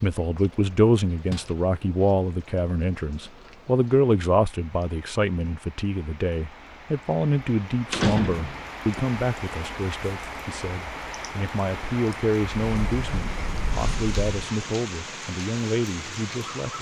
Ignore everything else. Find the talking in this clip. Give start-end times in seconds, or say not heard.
0.0-16.7.